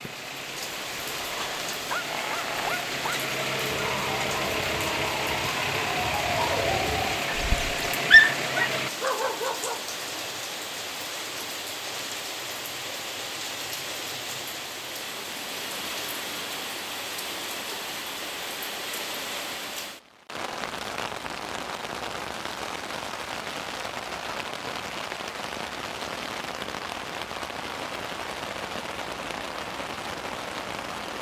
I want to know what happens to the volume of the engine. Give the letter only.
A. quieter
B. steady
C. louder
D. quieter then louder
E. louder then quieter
C.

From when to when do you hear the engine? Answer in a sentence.
The engine can be heard from 0.0 to 8.9 s.